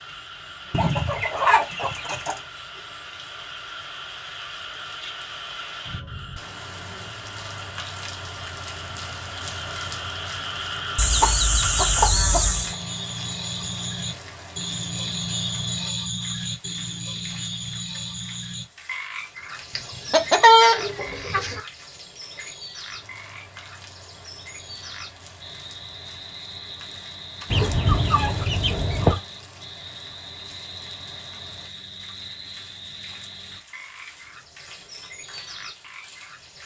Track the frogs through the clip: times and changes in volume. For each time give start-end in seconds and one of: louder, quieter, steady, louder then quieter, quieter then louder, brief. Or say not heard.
0.0-36.6 louder then quieter.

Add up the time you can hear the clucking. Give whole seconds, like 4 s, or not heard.
7 s.